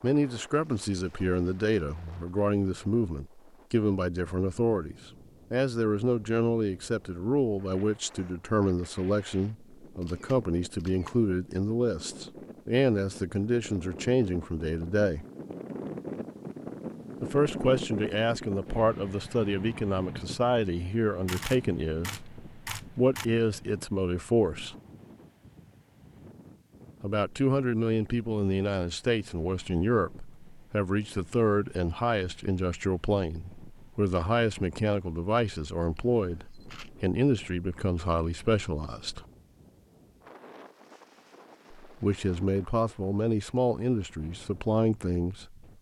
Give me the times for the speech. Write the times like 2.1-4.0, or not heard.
0.0-15.2, 17.2-24.8, 27.0-39.2, 41.8-45.6.